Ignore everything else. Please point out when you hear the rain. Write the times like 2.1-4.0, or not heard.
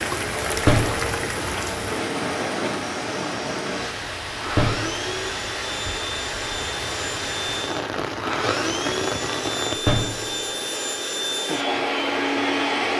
0.0-9.8.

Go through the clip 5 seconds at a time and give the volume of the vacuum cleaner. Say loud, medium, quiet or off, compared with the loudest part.
medium, medium, loud.